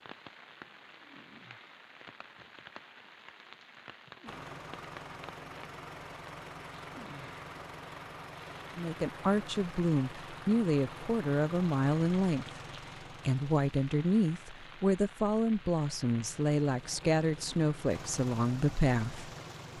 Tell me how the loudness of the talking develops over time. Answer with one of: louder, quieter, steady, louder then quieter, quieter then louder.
steady.